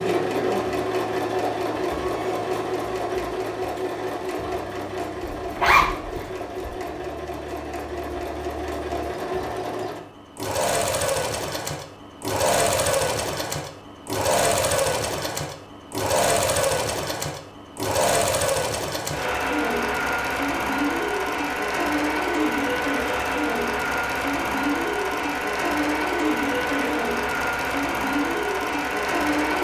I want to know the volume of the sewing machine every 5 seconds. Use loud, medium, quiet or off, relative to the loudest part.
loud, medium, loud, loud, loud, loud.